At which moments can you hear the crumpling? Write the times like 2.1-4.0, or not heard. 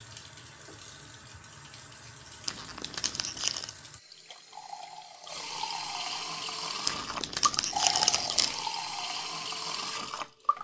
2.5-3.7, 6.8-8.6.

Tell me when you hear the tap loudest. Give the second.
8 s.